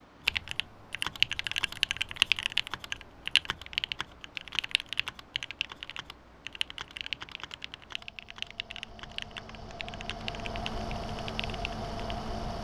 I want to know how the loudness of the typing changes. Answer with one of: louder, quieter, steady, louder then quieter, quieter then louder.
quieter.